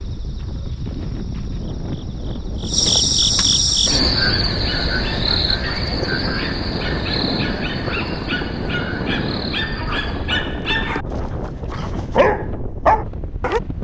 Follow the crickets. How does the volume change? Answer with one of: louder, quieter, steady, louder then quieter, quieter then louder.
louder then quieter.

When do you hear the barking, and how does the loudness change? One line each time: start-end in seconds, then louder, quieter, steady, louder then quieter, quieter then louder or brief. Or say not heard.
3.7-13.6 louder.